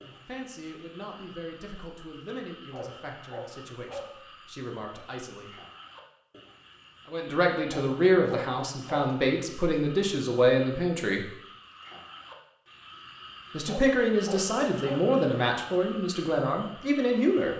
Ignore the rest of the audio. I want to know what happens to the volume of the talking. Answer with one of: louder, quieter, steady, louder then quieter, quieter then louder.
louder.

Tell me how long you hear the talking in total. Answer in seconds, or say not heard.
14 s.